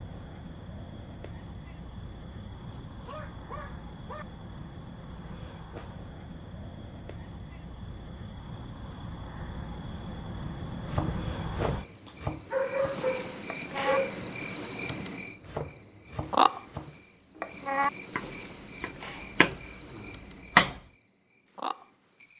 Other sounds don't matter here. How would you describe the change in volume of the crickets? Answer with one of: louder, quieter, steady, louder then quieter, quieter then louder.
louder then quieter.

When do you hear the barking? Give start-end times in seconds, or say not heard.
2.3-4.2, 12.1-14.3.